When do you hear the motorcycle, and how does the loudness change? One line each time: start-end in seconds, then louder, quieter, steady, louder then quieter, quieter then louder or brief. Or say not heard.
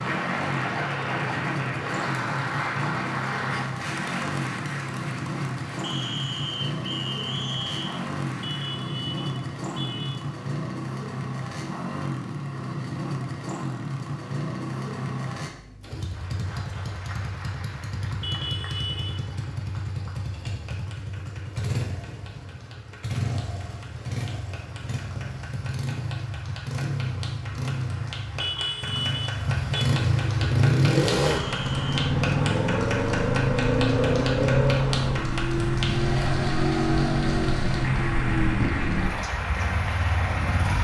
0.0-40.7 louder.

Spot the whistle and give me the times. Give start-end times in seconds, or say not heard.
5.8-8.1, 31.2-31.9.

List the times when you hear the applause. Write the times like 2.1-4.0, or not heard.
0.0-8.8, 15.9-40.7.